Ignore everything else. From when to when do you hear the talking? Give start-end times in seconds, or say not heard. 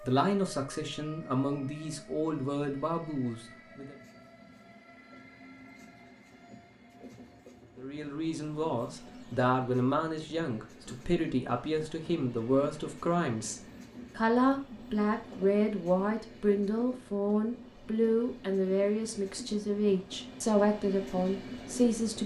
0.0-4.0, 7.8-22.2.